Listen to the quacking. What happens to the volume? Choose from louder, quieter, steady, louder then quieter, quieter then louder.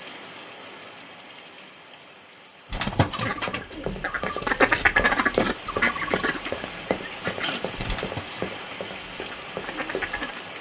louder then quieter.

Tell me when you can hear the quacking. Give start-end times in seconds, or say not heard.
2.7-10.4.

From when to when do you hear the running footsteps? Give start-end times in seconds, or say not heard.
3.5-10.1.